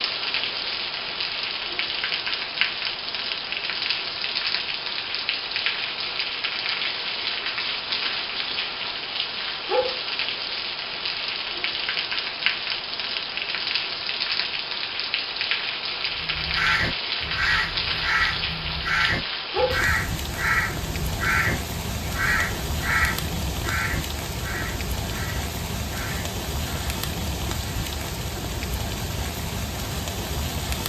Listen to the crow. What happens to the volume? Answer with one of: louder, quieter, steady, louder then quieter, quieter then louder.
quieter.